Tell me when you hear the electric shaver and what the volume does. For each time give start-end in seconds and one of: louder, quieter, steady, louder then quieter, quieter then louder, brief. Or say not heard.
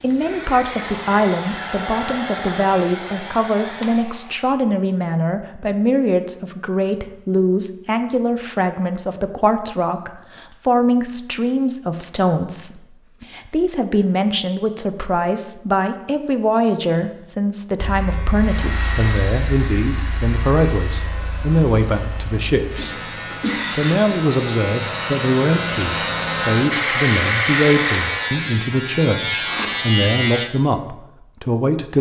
17.8-30.4 louder.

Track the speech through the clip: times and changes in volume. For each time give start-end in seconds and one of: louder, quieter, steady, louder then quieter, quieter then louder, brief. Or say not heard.
0.0-31.9 steady.